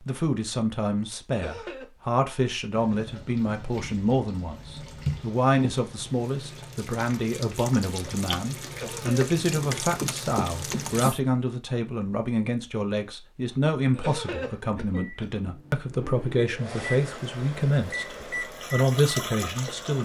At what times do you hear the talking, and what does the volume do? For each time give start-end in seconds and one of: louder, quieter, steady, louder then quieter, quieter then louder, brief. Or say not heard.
0.0-19.9 steady.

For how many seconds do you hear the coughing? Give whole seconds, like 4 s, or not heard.
3 s.